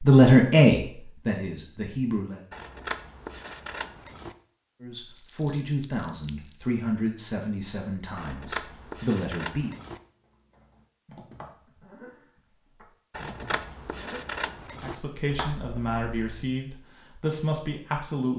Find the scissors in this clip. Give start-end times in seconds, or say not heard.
2.5-4.3, 8.2-10.0, 13.1-14.9.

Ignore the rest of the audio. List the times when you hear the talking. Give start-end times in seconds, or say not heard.
0.0-2.4, 4.8-9.8, 14.8-18.3.